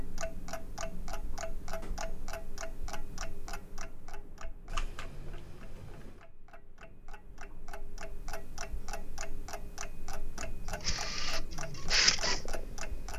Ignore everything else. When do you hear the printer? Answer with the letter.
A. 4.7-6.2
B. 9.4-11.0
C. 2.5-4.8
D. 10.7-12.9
D.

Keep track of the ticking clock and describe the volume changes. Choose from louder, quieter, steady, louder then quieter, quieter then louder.
quieter then louder.